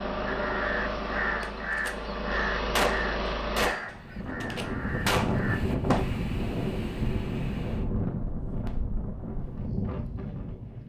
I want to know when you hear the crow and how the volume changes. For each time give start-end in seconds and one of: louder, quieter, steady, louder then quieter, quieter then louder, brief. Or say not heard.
0.2-5.6 quieter.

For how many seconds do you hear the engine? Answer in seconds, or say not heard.
4 s.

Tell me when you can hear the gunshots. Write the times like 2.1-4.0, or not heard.
1.4-1.9, 2.8-6.0.